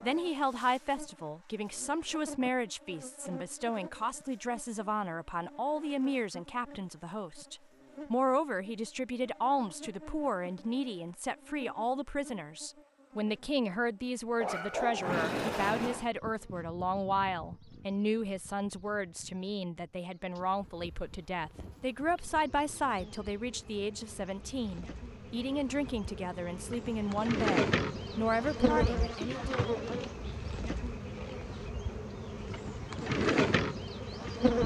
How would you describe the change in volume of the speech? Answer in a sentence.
The volume of the speech stays about the same.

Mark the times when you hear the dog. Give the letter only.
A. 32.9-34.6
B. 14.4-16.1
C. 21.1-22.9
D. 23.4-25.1
B.